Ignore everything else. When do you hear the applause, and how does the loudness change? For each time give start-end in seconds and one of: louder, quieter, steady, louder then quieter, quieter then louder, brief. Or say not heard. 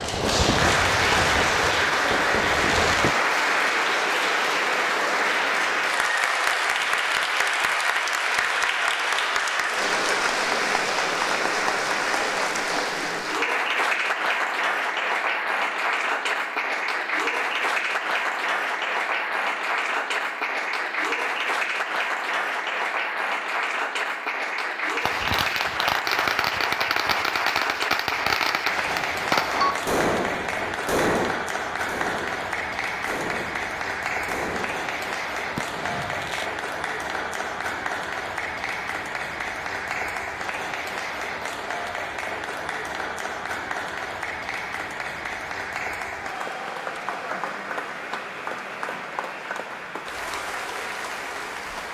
0.0-51.8 quieter.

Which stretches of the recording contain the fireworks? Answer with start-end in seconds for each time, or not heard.
0.0-3.1, 25.0-36.5.